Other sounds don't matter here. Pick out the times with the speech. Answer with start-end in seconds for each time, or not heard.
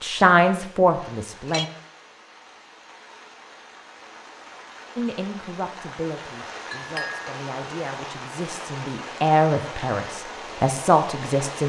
0.0-1.7, 5.0-11.6.